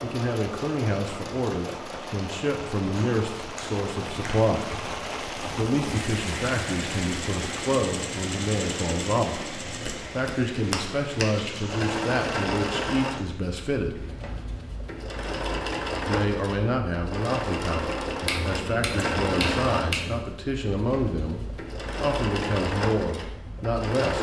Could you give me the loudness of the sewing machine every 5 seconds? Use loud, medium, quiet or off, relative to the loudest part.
medium, medium, loud, loud, loud.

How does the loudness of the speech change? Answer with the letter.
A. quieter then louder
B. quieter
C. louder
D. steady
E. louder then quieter
D.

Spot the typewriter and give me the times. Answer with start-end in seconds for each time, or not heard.
not heard.